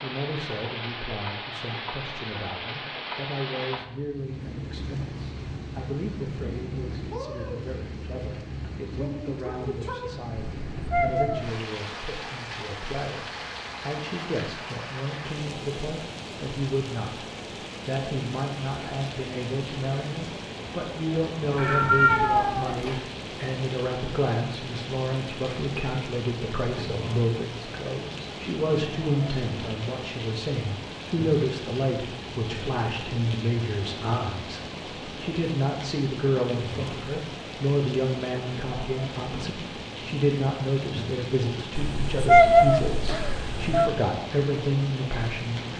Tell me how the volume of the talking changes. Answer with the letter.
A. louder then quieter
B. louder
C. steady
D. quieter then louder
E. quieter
B.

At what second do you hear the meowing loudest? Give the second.
42 s.